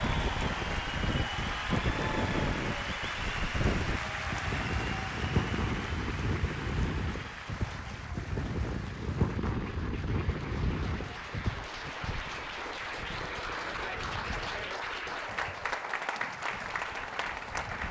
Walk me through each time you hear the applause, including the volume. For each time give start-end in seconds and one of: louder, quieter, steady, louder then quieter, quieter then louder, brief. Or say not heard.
0.0-17.8 quieter then louder.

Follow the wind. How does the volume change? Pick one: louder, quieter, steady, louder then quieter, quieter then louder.
quieter.